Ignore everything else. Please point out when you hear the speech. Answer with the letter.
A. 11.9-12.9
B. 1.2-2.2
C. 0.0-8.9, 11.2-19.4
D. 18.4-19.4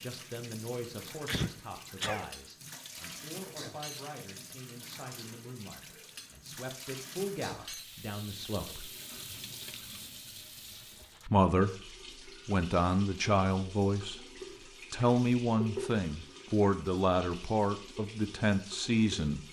C.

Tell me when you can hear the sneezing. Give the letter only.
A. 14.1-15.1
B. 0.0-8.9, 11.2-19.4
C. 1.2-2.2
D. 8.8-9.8
C.